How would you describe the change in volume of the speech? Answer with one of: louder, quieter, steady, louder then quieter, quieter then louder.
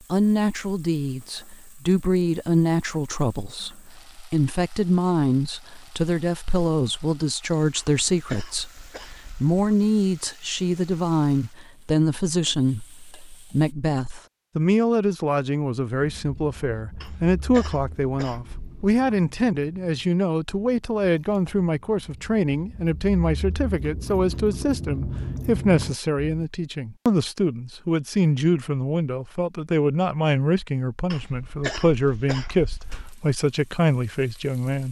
steady.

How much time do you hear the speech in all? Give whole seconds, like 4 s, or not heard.
35 s.